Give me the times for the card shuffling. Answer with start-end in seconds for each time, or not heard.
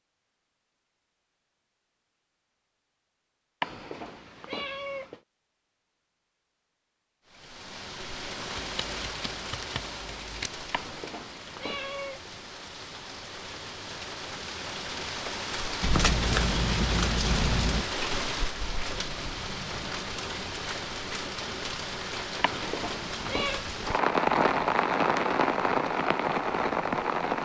8.6-10.5, 15.8-17.9.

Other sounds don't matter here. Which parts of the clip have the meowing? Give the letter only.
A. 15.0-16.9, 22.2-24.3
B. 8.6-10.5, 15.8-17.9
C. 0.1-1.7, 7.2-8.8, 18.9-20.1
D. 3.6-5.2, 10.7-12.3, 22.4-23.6
D.